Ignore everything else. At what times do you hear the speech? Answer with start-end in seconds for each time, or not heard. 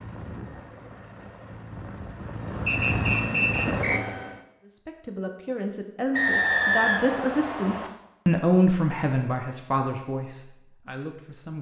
4.7-11.5.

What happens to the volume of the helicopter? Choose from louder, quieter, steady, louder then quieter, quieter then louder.
louder.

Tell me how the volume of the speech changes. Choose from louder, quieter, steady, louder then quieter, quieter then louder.
louder then quieter.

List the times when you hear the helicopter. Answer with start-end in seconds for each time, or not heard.
0.0-4.5.